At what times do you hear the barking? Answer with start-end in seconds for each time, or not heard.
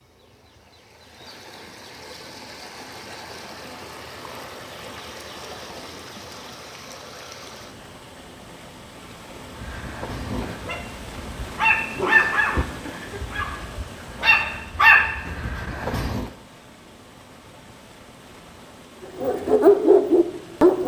9.6-16.3, 19.1-20.8.